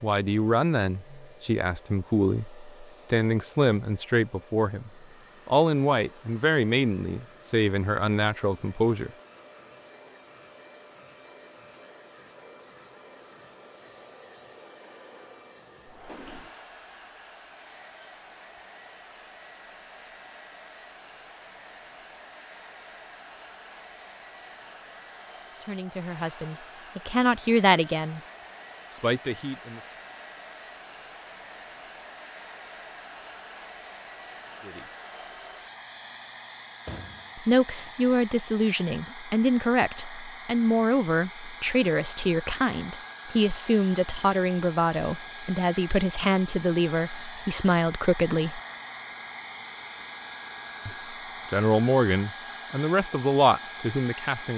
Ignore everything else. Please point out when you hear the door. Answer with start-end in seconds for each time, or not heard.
15.8-16.6, 36.9-37.3.